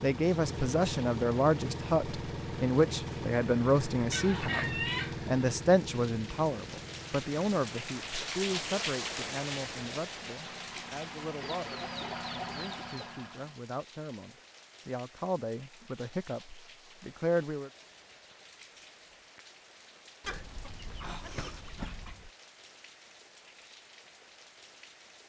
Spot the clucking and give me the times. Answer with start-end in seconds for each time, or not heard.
4.1-5.2, 11.4-13.2, 20.2-22.3.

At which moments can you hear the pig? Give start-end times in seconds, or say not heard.
not heard.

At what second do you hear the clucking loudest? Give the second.
5 s.